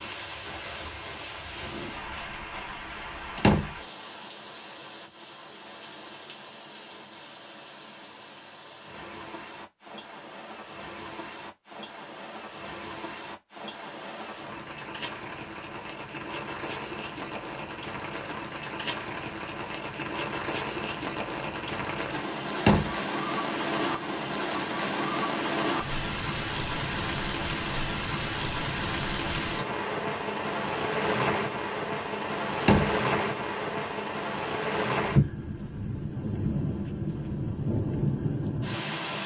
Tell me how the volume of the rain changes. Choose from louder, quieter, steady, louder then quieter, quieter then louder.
louder.